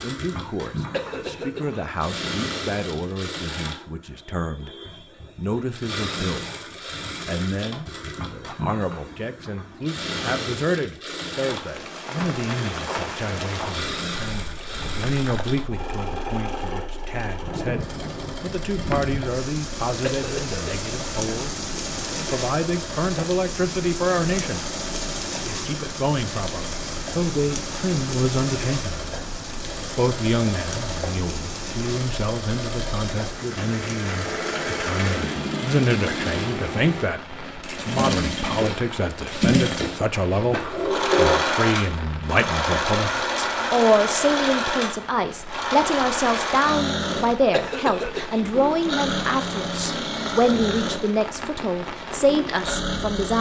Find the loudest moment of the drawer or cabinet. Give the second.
41 s.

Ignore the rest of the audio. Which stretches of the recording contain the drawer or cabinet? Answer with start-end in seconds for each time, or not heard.
18.1-19.1, 40.5-41.5.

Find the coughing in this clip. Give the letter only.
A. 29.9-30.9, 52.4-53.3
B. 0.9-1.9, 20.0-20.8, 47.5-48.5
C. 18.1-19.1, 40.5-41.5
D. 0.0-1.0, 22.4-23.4
B.